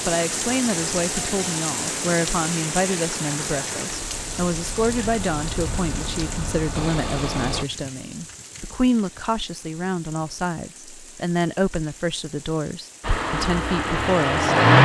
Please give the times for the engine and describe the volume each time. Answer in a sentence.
The engine can be heard from 0.2 to 7.7 s, getting louder; and briefly from 13.0 to 14.8 s.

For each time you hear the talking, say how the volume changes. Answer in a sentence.
The talking can be heard from 0.1 to 14.6 s, at a steady volume.